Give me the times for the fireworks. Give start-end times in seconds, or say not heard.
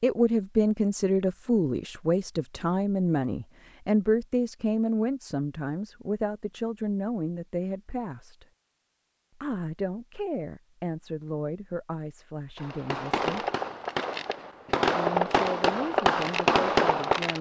12.6-17.3.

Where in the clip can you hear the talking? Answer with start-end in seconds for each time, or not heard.
0.0-8.4, 9.4-13.4, 14.9-17.3.